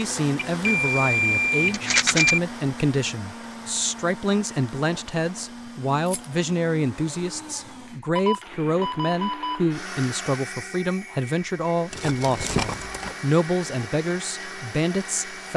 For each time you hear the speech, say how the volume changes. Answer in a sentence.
The speech can be heard from 0.0 to 15.5 s, at a steady volume.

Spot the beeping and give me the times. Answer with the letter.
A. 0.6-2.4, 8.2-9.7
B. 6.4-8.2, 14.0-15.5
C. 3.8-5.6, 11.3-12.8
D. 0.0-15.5
A.